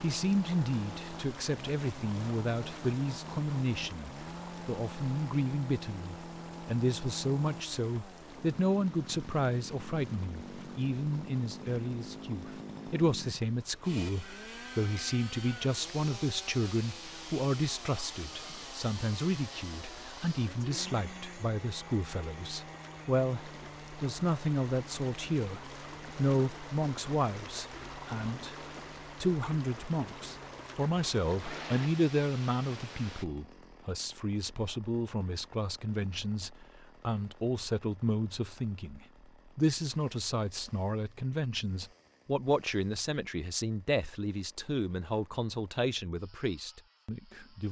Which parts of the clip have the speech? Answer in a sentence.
The speech can be heard from 0.0 to 28.6 s and from 29.2 to 47.6 s.